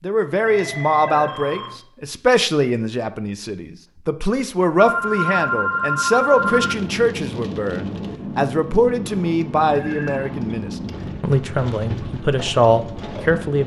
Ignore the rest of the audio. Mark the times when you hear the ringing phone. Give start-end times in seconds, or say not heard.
0.5-1.8, 4.8-6.8, 9.7-10.3.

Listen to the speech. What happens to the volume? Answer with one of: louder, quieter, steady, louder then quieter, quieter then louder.
steady.